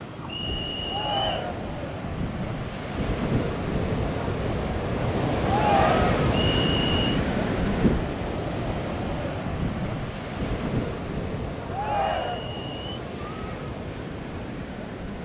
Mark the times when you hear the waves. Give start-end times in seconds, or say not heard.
0.0-15.2.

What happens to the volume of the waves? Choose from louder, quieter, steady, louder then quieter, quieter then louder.
louder then quieter.